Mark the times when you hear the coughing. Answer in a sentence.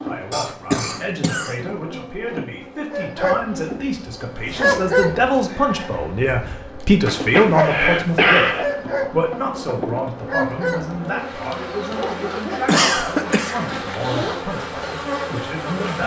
You can hear the coughing from 0.3 to 1.6 s, from 7.0 to 8.7 s and from 12.7 to 13.6 s.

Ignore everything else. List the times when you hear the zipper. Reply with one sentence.
You can hear the zipper from 4.3 to 4.9 s and from 13.7 to 14.4 s.